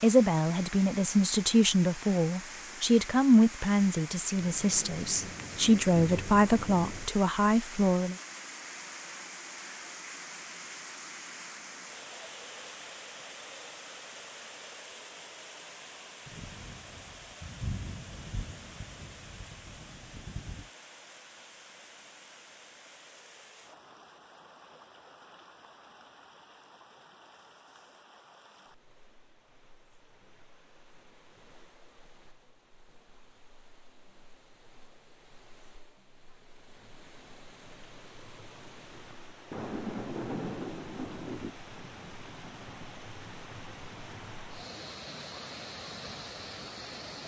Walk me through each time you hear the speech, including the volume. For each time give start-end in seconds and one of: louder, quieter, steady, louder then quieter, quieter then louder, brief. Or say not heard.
0.0-8.2 steady.